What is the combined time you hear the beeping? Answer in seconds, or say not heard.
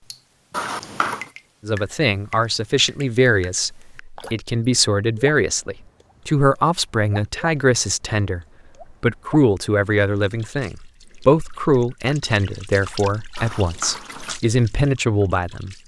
2 s.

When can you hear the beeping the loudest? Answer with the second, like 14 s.
1 s.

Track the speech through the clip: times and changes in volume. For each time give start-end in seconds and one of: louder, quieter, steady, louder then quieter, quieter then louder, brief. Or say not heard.
1.6-15.8 steady.